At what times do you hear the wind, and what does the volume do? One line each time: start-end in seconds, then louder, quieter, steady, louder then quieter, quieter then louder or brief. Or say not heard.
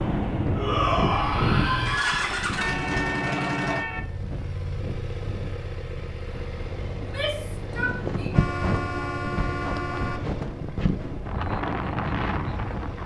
0.2-13.0 quieter then louder.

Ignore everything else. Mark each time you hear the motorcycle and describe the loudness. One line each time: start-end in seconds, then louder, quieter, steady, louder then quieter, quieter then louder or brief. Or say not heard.
0.0-13.0 quieter.